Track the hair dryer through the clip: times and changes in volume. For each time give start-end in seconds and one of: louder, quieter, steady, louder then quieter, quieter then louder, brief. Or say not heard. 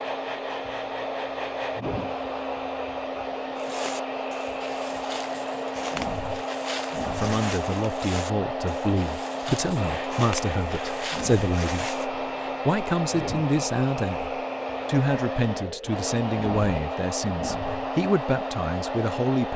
0.0-19.5 steady.